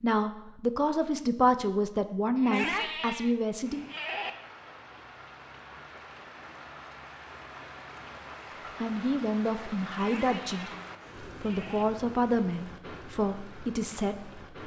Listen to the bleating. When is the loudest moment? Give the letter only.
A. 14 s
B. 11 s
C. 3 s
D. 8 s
C.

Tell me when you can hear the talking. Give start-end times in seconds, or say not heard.
0.0-3.9, 8.8-14.4.